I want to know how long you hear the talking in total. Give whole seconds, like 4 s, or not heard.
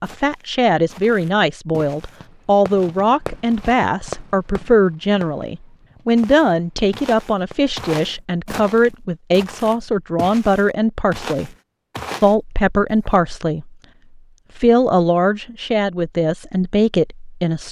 16 s.